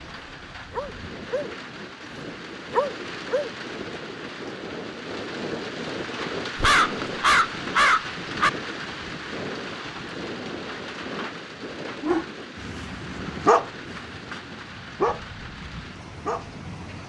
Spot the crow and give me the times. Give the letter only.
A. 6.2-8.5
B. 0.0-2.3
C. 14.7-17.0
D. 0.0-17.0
A.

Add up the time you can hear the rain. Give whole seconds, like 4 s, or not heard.
17 s.